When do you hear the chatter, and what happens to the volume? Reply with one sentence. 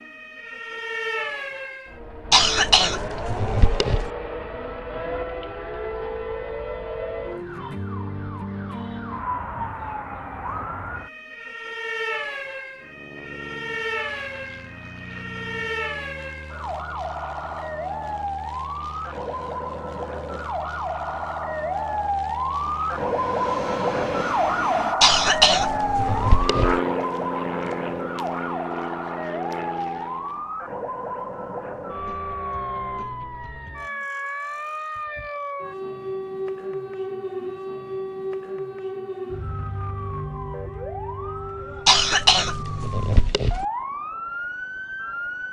The chatter can't be heard in this clip.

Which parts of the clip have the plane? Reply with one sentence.
You can hear the plane from 12.7 to 30.5 s.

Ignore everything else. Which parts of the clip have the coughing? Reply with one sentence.
You can hear the coughing from 2.3 to 4.1 s, from 25.0 to 26.8 s and from 41.9 to 43.6 s.